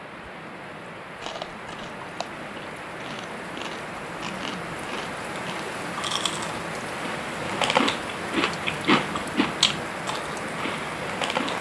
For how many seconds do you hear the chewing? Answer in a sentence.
You can hear the chewing for 10 seconds altogether.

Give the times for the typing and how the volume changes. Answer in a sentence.
The typing can't be heard in this clip.